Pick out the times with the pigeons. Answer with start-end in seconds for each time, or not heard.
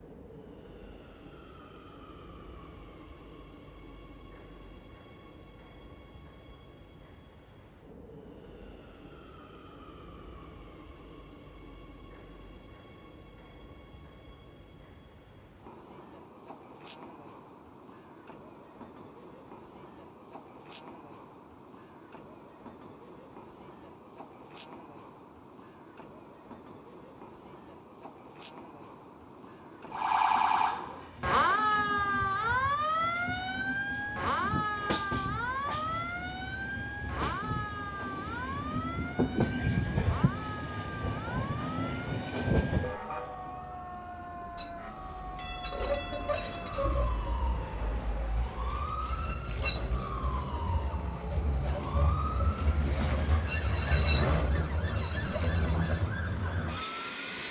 not heard.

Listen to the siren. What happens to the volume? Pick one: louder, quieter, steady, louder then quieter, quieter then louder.
quieter.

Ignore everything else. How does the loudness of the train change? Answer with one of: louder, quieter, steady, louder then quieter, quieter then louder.
louder.